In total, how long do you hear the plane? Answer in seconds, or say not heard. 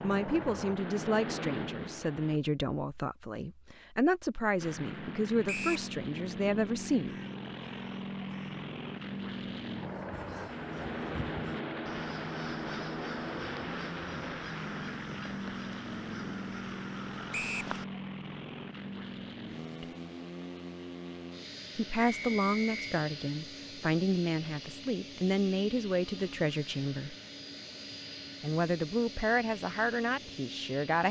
29 s.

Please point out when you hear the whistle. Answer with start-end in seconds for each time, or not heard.
5.5-5.9, 17.3-17.8, 22.1-22.9.